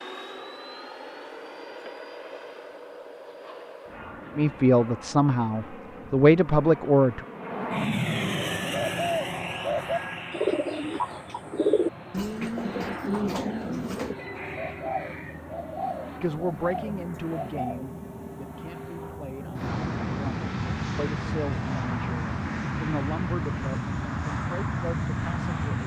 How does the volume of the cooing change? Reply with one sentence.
The loudness of the cooing goes down.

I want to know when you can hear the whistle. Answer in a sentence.
You can't hear the whistle here.